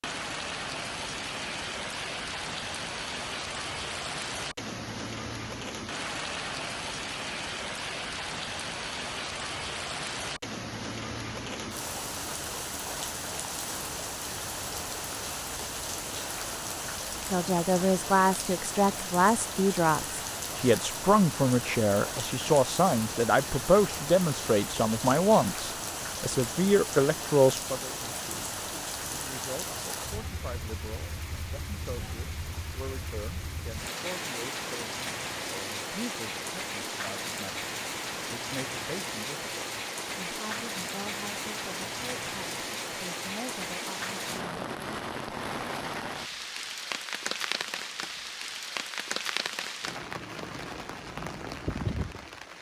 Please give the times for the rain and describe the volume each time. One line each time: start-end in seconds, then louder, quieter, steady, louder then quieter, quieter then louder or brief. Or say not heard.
0.0-52.5 steady.